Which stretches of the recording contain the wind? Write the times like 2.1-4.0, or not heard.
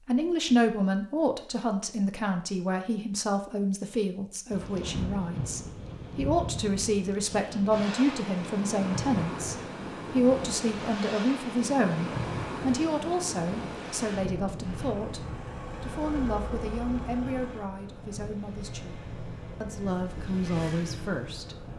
4.5-21.7.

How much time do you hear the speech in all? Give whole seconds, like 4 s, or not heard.
21 s.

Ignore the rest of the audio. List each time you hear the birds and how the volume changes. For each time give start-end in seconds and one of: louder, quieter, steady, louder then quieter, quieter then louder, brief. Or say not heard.
not heard.